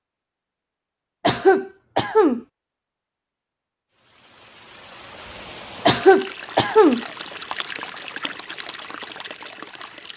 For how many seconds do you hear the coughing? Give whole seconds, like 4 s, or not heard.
2 s.